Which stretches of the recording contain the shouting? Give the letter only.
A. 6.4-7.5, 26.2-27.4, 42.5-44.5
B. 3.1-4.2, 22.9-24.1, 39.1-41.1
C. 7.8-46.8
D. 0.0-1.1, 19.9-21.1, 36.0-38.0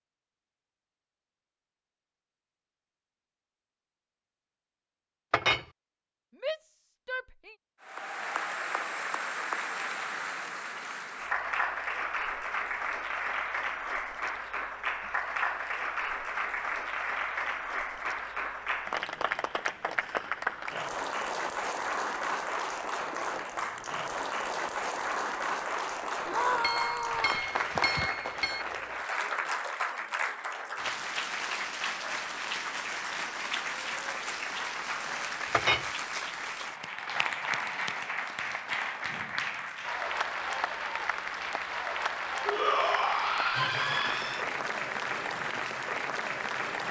A.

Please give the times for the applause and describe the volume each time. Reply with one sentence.
You can hear the applause from 7.8 to 46.8 s, at a steady volume.